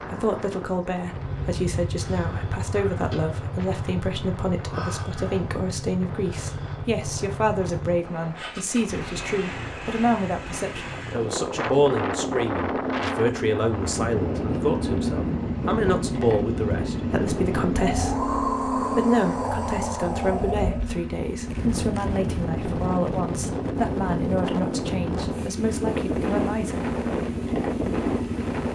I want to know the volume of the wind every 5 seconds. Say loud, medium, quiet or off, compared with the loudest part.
quiet, quiet, loud, loud, loud, loud.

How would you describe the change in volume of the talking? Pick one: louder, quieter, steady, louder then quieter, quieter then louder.
steady.